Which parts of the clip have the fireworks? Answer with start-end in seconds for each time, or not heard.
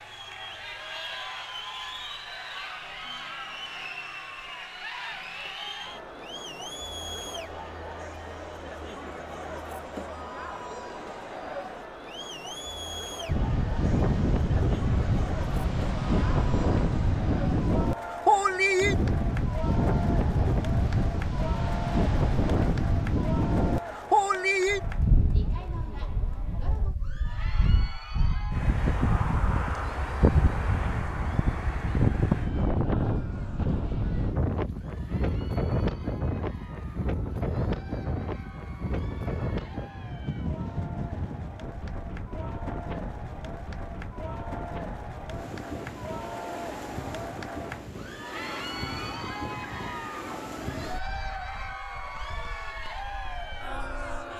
not heard.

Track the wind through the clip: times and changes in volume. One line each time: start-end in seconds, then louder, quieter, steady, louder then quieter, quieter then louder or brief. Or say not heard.
13.2-54.3 quieter.